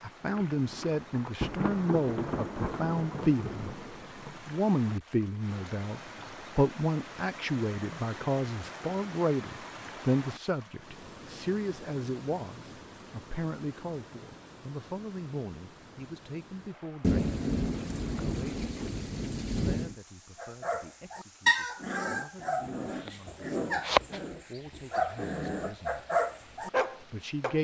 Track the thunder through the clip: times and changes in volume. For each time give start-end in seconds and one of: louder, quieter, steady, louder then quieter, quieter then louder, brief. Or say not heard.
0.3-4.4 louder then quieter
17.0-19.9 brief.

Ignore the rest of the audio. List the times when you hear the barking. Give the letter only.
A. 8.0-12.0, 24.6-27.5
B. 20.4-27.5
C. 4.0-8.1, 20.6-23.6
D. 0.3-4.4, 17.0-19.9
B.